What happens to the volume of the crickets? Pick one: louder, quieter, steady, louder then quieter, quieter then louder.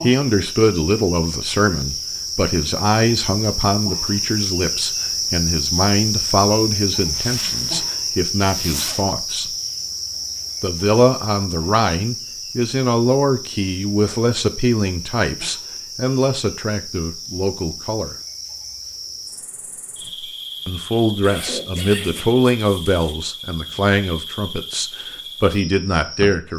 quieter.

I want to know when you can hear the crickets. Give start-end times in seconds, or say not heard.
0.0-26.5.